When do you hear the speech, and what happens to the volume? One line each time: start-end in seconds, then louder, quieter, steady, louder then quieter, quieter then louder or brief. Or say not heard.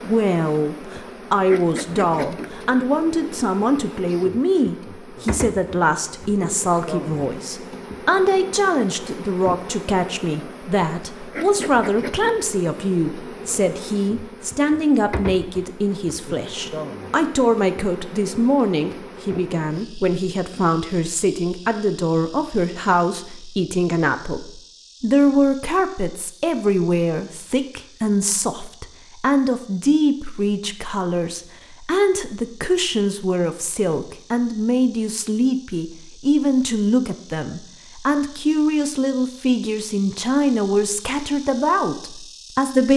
0.0-42.9 steady.